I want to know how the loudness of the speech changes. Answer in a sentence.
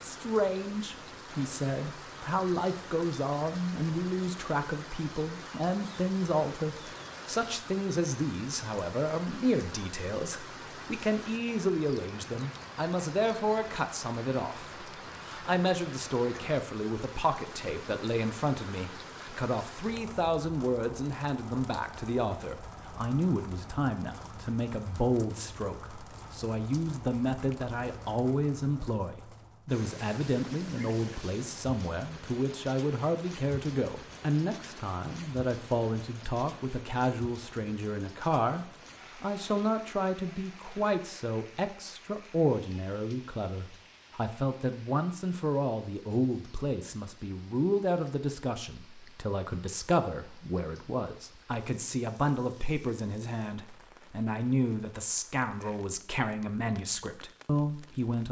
The loudness of the speech stays about the same.